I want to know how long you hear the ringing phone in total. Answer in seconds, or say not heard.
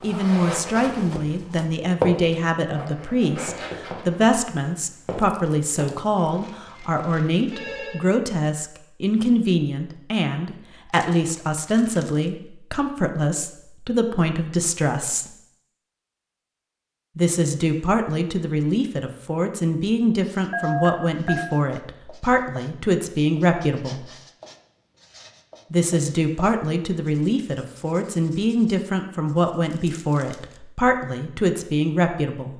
3 s.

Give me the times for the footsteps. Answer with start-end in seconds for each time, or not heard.
0.0-6.0.